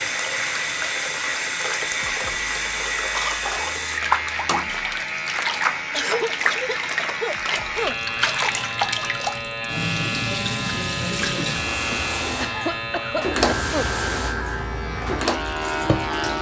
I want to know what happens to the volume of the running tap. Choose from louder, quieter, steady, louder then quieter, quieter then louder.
steady.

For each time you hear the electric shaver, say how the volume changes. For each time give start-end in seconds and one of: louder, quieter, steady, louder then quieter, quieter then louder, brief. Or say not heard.
0.0-16.3 steady.